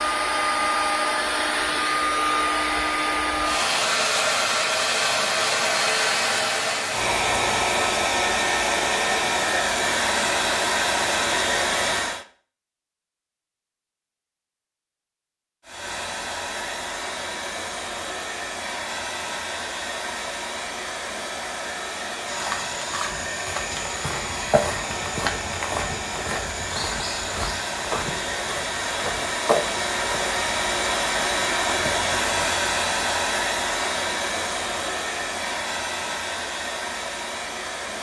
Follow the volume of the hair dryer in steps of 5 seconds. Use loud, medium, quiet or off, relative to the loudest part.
loud, loud, loud, medium, medium, medium, loud, medium.